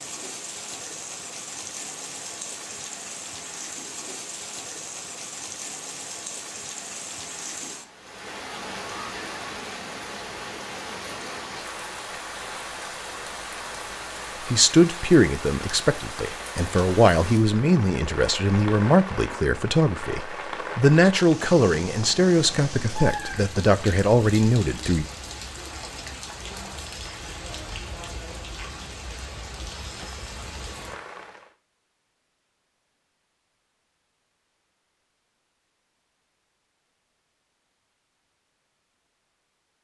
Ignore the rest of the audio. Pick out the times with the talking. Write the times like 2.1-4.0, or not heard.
14.5-25.1.